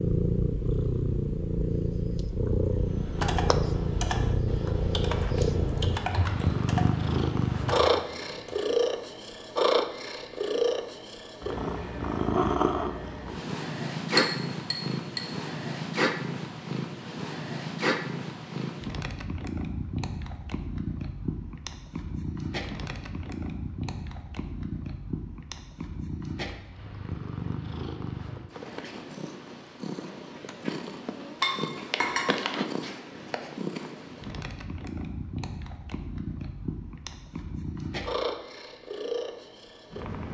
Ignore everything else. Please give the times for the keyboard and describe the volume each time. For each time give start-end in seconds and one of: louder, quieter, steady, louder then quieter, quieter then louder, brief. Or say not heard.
2.7-8.6 steady.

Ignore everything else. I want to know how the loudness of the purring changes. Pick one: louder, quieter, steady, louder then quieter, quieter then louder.
quieter.